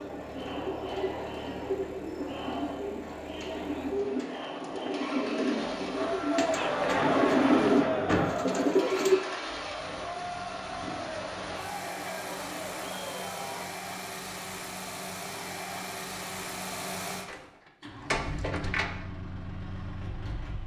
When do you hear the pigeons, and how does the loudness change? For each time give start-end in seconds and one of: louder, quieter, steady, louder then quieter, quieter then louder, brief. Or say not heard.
0.0-9.2 louder.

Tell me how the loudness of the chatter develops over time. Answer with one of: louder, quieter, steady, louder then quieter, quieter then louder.
louder then quieter.